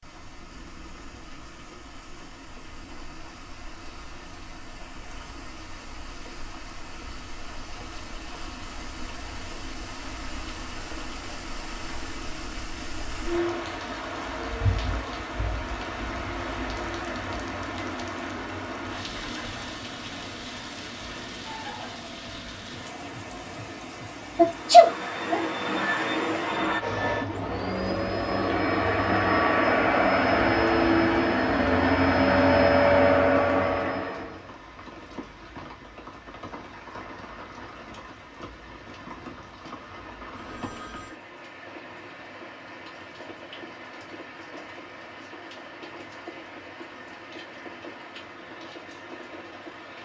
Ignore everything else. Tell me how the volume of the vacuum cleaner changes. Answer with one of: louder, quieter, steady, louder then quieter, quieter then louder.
louder.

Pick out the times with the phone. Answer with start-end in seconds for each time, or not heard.
40.3-41.2.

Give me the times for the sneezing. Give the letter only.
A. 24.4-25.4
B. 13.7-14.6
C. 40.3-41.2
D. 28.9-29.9
A.